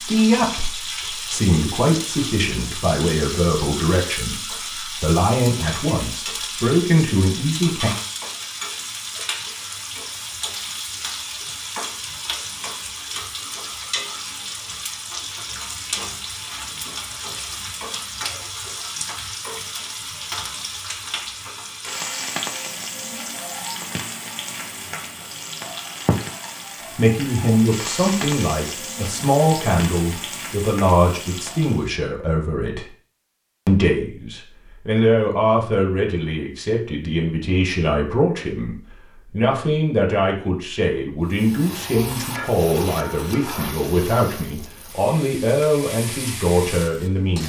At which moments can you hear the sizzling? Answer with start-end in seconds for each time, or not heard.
0.0-31.9, 41.2-47.4.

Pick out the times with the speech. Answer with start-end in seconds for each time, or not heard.
0.0-7.9, 26.9-32.9, 33.6-47.4.